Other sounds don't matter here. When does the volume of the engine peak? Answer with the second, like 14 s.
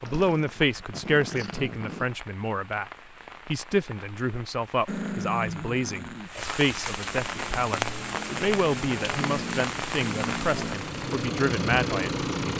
12 s.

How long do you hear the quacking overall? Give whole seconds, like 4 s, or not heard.
not heard.